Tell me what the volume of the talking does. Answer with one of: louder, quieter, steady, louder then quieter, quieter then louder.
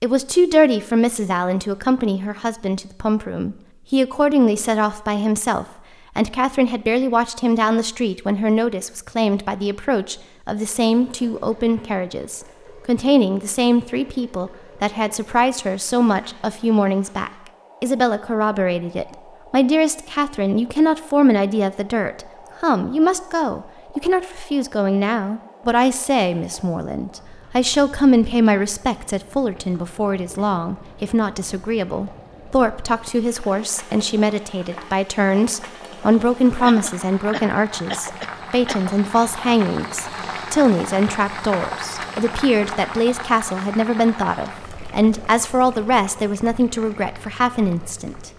steady.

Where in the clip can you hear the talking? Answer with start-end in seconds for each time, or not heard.
0.0-48.3.